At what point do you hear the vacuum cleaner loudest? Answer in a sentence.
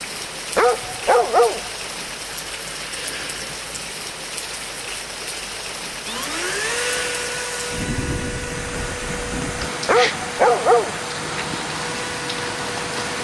The volume of the vacuum cleaner peaks at 7 seconds.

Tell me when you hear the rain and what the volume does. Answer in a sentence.
The rain can be heard from 0.0 to 13.1 s, at a steady volume.